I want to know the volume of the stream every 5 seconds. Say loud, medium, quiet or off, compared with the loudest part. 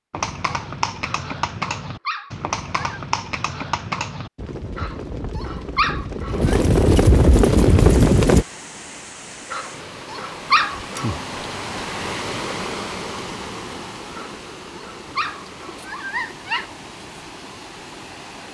off, medium, loud, medium.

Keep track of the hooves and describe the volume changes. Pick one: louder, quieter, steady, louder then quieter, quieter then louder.
louder.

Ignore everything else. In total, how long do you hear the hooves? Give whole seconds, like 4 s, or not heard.
8 s.